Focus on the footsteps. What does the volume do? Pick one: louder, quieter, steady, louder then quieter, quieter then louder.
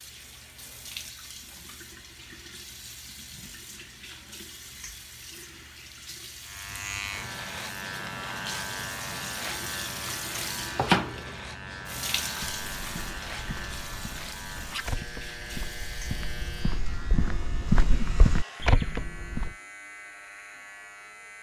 louder.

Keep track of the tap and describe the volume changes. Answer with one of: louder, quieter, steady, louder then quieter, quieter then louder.
louder then quieter.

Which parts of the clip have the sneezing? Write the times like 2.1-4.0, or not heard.
not heard.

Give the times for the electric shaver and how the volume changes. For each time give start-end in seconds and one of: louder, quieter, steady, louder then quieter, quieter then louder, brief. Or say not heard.
6.4-21.3 quieter.